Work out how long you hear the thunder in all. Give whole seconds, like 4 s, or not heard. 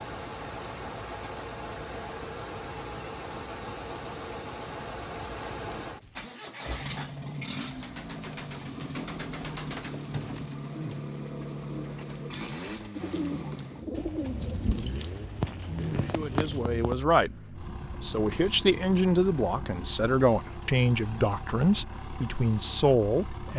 3 s.